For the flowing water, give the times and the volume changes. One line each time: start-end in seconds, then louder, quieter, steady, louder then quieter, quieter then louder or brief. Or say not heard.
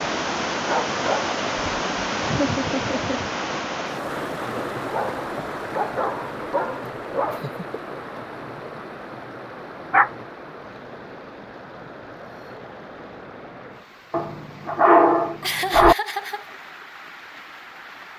0.0-18.1 quieter.